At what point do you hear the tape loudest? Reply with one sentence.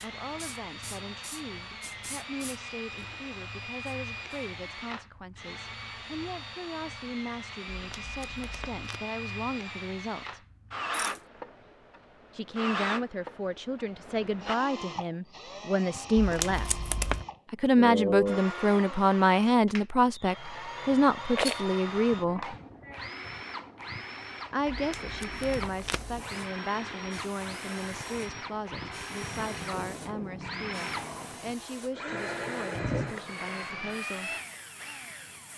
The loudest moment of the tape is at 17 seconds.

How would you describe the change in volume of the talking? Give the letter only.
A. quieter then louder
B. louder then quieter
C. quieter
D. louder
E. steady
B.